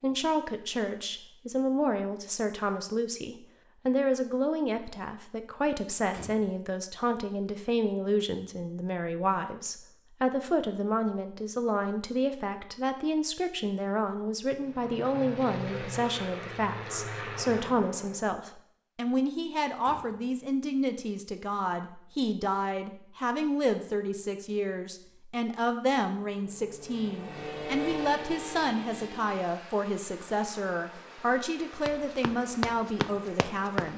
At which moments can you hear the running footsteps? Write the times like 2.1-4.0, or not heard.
31.9-33.9.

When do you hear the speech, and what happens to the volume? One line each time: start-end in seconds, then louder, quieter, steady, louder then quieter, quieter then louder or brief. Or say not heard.
0.0-33.9 steady.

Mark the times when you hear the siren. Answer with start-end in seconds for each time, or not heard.
not heard.